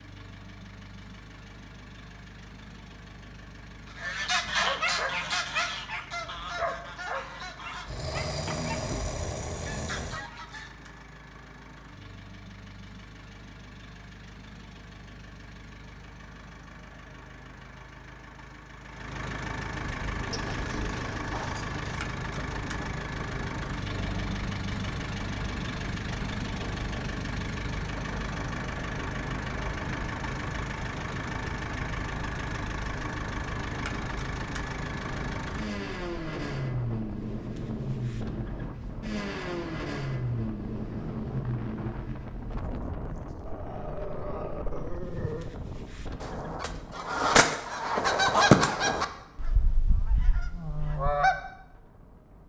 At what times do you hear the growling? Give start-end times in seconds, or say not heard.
7.8-10.3, 20.3-22.1, 43.5-45.5.